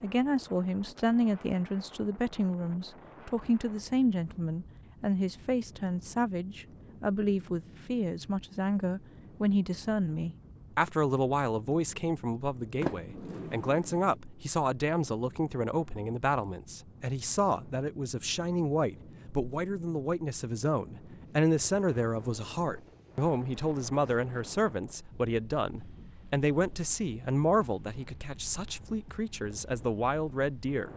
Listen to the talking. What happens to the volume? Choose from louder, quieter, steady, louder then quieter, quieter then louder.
steady.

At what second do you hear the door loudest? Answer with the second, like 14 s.
13 s.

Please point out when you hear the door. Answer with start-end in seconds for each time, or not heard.
12.8-14.2.